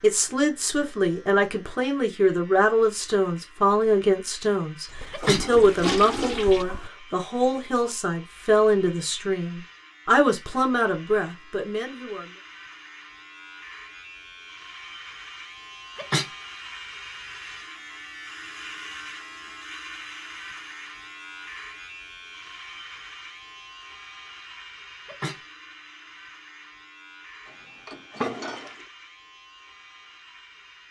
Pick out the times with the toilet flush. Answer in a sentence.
The toilet flush can be heard from 4.8 to 6.9 s and from 27.9 to 28.9 s.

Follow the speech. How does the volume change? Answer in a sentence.
The volume of the speech stays about the same.